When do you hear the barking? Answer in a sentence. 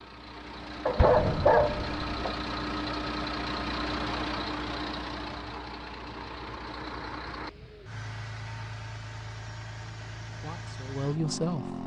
You can hear the barking from 0.8 to 2.5 s.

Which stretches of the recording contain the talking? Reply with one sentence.
The talking can be heard from 10.3 to 11.8 s.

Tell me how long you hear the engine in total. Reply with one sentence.
You can hear the engine for 12 seconds altogether.